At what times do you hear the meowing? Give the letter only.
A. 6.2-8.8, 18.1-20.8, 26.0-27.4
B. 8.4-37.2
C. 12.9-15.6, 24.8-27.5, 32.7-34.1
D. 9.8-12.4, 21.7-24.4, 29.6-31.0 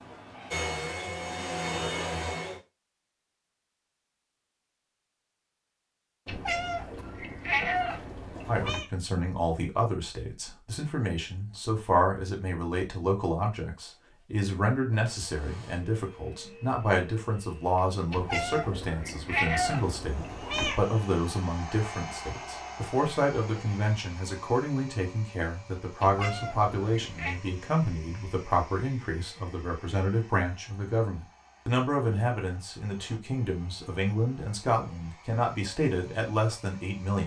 A.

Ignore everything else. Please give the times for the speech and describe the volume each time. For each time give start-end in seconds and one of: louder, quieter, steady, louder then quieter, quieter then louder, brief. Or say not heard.
8.4-37.2 steady.